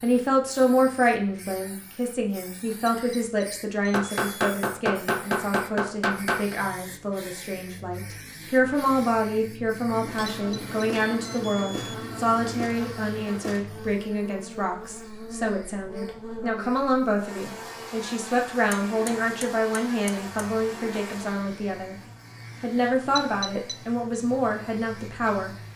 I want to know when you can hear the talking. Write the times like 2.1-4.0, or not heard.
0.0-21.9, 22.6-25.5.